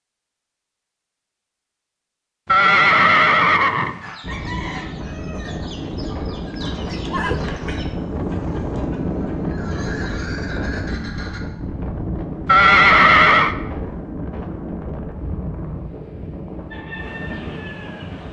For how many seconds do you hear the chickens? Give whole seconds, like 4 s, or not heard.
9 s.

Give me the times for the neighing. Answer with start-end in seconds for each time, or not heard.
2.5-4.1, 6.5-8.4, 12.4-13.6.